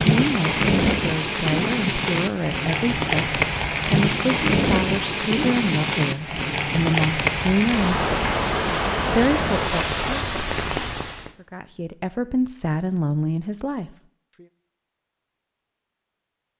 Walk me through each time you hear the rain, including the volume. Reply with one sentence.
The rain can be heard from 0.0 to 11.3 s, at a steady volume.